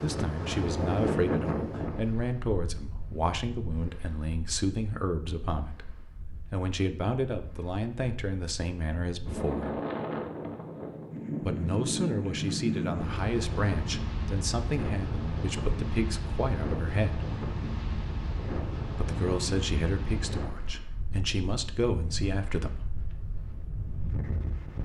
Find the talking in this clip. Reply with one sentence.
The talking can be heard from 0.0 to 5.9 s, from 6.5 to 9.8 s, from 11.4 to 17.3 s and from 18.9 to 22.9 s.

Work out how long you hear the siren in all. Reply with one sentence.
You can't hear the siren here.